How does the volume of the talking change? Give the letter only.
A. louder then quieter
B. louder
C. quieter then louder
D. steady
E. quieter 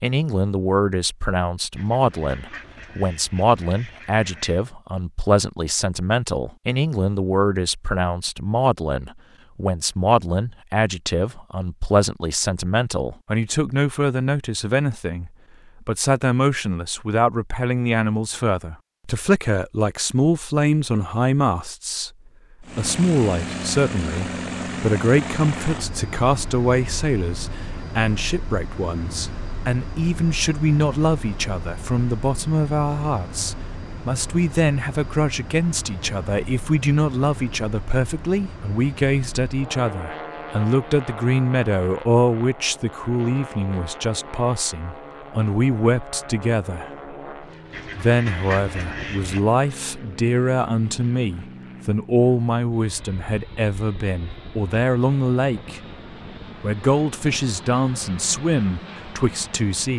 D.